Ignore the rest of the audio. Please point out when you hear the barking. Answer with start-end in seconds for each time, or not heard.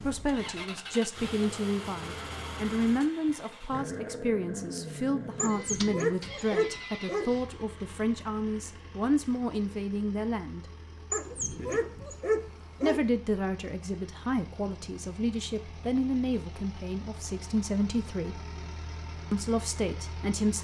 5.3-7.3, 11.1-13.1.